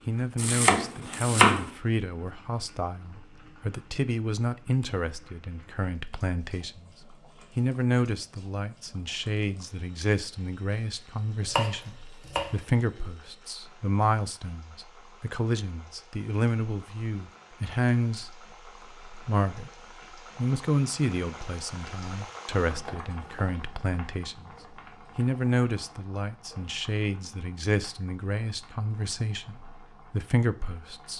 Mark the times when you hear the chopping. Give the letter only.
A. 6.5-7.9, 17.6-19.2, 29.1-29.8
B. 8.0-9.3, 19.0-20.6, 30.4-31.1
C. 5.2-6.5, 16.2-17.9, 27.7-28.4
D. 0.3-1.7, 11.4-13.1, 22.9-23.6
D.